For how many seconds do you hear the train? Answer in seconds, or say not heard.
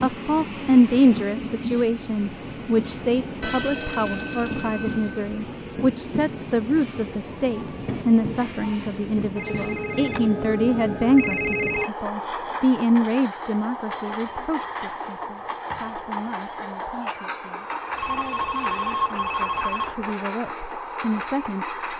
22 s.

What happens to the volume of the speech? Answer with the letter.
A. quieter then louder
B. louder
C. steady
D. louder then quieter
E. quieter
E.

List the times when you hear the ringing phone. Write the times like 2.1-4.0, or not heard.
3.4-5.3, 9.3-11.9, 17.9-19.9.